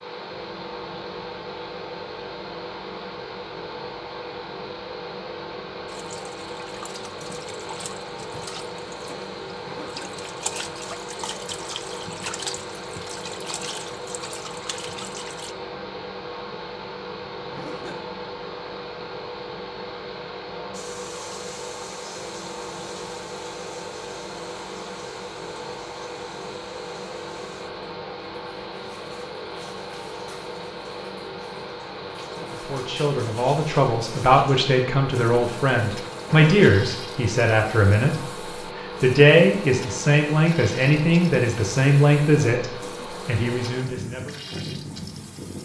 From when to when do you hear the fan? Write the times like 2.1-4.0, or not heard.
0.0-45.6.